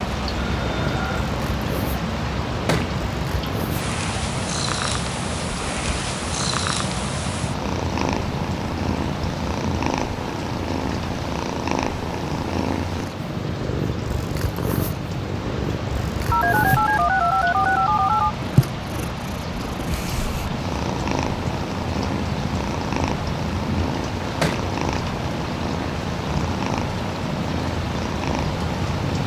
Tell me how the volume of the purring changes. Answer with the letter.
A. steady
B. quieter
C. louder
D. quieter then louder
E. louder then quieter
A.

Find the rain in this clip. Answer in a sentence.
The rain can be heard from 0.0 to 29.2 s.